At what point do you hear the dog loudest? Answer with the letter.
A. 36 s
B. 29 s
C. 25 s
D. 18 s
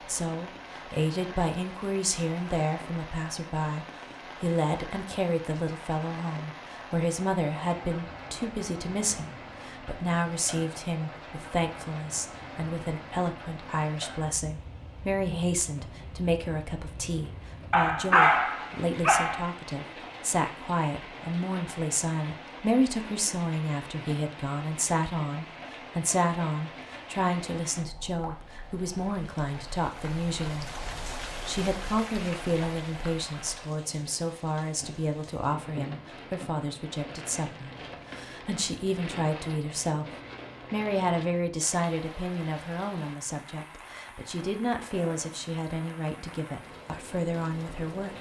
D.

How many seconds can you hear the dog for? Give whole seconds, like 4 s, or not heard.
2 s.